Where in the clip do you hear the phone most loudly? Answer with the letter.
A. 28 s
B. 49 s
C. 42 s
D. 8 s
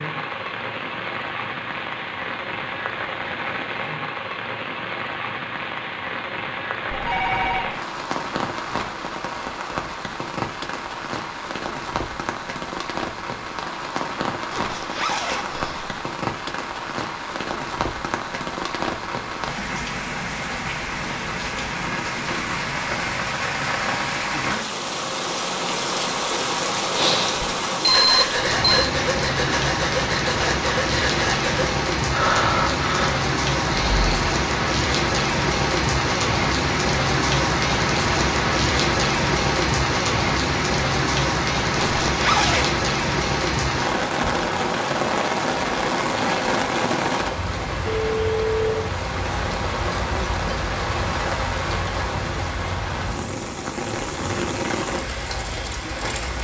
A.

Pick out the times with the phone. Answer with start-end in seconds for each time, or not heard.
6.9-7.7, 27.8-28.9, 47.9-48.9.